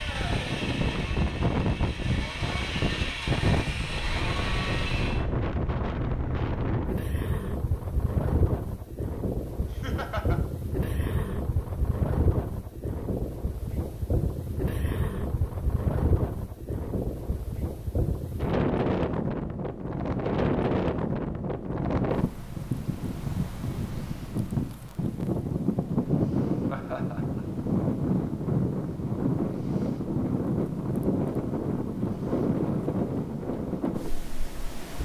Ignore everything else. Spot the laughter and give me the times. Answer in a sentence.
You can hear the laughter from 9.7 to 10.4 s and from 26.6 to 27.6 s.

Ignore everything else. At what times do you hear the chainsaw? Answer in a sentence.
You can hear the chainsaw from 0.0 to 5.2 s.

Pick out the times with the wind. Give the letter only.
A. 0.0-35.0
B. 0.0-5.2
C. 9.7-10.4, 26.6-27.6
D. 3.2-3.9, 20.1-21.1
A.